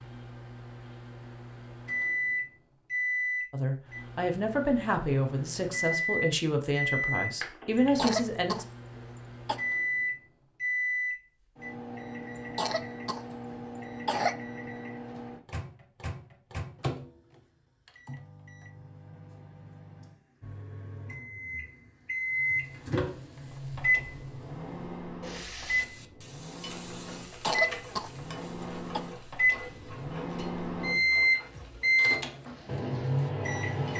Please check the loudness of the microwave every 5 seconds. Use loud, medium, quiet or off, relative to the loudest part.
medium, medium, medium, quiet, medium, medium, loud.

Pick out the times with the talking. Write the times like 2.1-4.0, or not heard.
3.5-8.7.